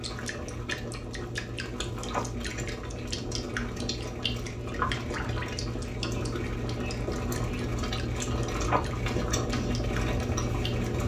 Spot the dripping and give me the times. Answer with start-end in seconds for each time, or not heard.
0.0-11.0.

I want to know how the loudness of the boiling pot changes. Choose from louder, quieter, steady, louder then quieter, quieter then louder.
louder.